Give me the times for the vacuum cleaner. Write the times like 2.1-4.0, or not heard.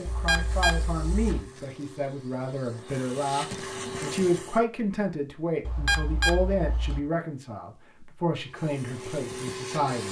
0.0-4.6, 8.3-10.0.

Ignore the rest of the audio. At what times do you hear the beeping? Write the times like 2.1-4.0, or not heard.
0.1-1.4, 5.7-7.0.